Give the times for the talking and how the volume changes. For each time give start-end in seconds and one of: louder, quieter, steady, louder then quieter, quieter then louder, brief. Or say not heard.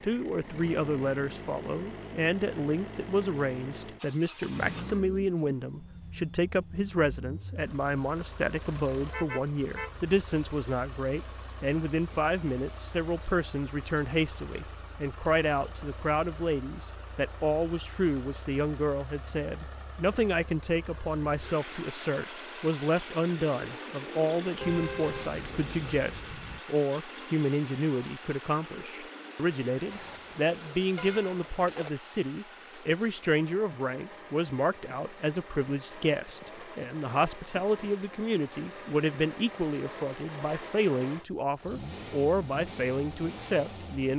0.0-44.1 steady.